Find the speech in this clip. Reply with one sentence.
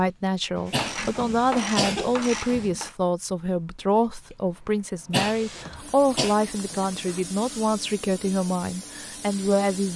The speech can be heard from 0.0 to 9.9 s.